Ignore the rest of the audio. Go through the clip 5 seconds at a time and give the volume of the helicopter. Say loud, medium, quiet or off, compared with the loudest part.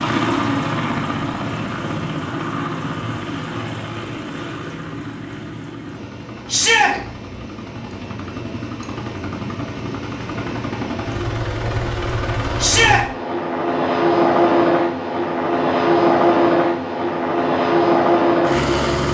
medium, quiet, loud, loud.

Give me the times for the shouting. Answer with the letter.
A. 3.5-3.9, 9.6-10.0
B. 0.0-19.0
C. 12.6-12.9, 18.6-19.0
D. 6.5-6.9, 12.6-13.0
D.